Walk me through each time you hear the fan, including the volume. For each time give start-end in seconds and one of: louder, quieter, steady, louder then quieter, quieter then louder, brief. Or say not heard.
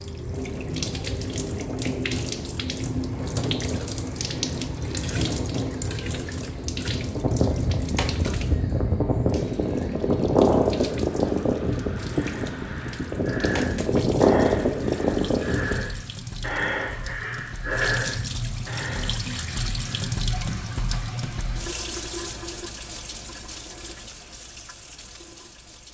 0.0-15.8 louder.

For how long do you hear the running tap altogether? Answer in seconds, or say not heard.
26 s.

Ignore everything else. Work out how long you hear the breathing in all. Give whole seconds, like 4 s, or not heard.
8 s.